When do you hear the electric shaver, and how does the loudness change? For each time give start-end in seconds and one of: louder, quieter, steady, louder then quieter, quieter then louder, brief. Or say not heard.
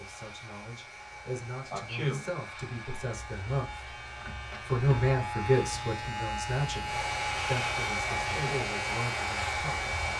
0.0-10.1 louder.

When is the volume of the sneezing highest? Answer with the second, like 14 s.
2 s.